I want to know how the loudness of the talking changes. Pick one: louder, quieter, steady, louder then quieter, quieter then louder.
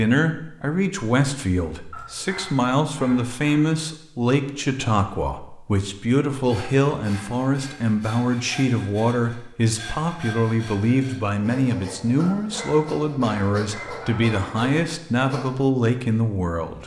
steady.